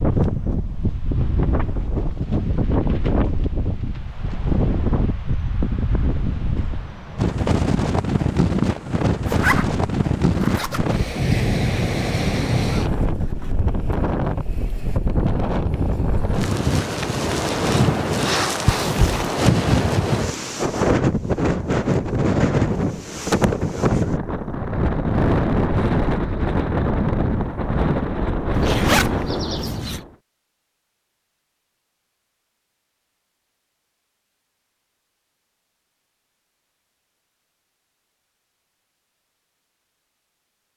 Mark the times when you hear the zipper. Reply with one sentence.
The zipper can be heard from 9.2 to 10.9 s, from 18.6 to 19.4 s and from 28.5 to 30.0 s.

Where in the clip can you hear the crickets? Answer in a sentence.
You can't hear the crickets here.